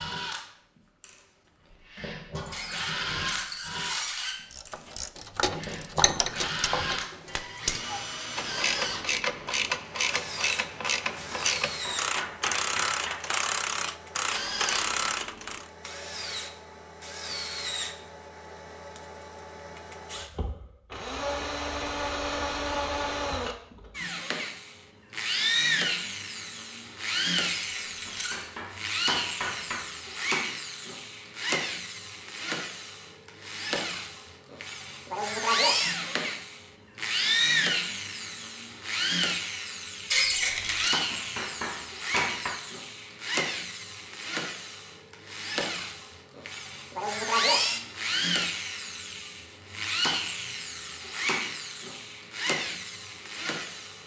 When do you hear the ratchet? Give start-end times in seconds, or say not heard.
4.5-15.7.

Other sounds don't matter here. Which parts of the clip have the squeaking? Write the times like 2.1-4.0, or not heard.
2.5-4.4, 27.6-28.4, 40.0-40.9.